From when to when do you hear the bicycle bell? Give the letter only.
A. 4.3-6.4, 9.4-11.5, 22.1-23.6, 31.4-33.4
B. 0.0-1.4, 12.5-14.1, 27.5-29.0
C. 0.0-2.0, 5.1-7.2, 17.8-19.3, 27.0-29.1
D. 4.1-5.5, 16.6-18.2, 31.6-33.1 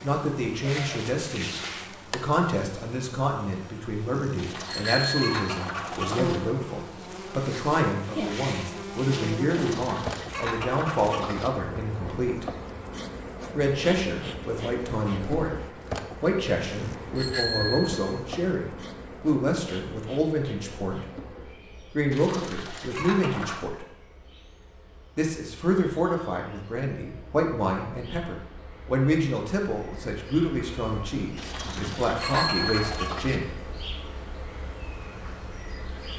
D.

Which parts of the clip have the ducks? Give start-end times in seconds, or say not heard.
4.3-6.4, 9.4-11.5, 22.1-23.6, 31.4-33.4.